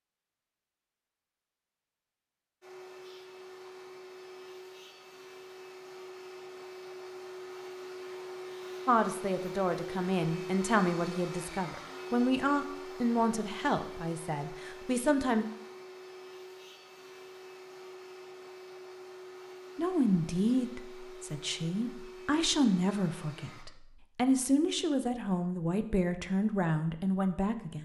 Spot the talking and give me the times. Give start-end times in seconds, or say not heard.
8.8-15.4, 19.8-27.8.